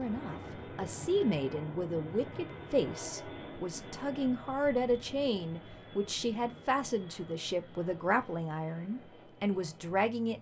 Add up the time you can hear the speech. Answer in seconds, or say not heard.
10 s.